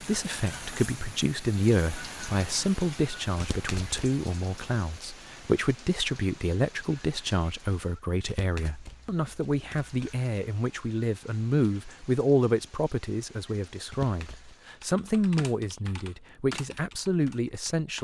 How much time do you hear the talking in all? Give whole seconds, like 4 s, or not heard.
18 s.